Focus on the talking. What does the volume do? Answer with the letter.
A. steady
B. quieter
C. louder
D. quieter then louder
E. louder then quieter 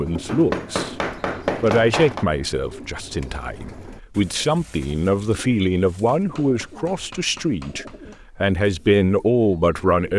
D.